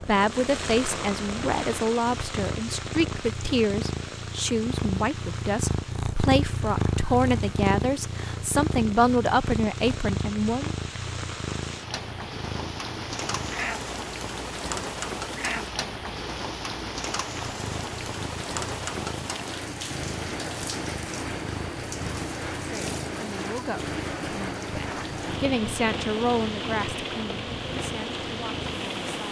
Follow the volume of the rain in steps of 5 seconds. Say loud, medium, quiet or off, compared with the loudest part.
loud, medium, loud, loud, loud, loud.